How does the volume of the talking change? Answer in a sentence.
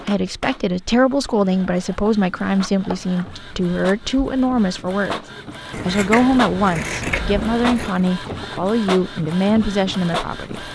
The volume of the talking stays about the same.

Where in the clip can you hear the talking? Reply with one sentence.
The talking can be heard from 0.1 to 10.6 s.